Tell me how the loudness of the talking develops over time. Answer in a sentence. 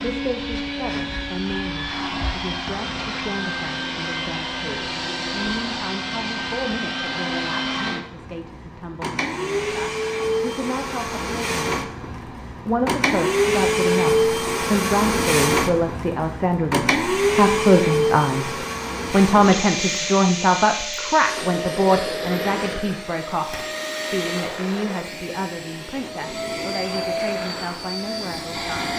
The loudness of the talking goes up, then down.